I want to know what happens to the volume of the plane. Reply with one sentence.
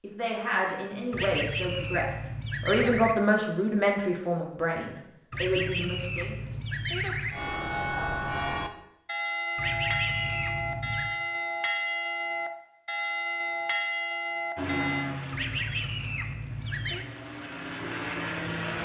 The volume of the plane goes down, then up.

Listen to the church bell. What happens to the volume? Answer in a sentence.
The volume of the church bell stays about the same.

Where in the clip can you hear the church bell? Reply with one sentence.
The church bell can be heard from 7.3 to 15.1 s.